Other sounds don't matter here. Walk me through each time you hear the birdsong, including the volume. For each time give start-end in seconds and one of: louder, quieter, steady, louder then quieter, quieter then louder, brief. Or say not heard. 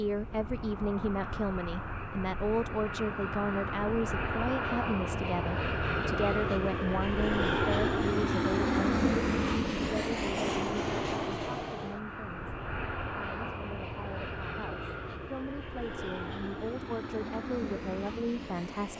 not heard.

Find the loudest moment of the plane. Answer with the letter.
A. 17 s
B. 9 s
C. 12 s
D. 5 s
B.